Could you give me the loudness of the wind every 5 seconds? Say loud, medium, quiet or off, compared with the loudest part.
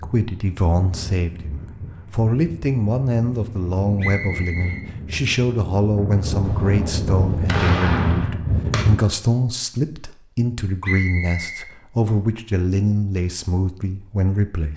medium, loud, off.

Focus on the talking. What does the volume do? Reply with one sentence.
The volume of the talking stays about the same.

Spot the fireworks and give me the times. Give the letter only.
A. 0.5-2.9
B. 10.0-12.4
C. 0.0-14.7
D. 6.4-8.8
D.